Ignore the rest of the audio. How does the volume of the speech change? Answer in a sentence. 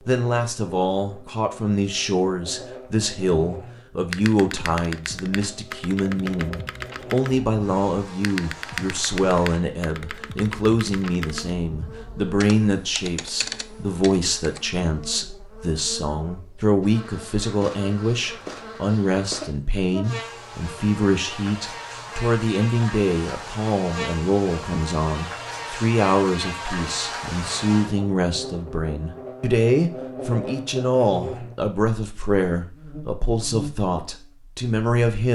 The loudness of the speech stays about the same.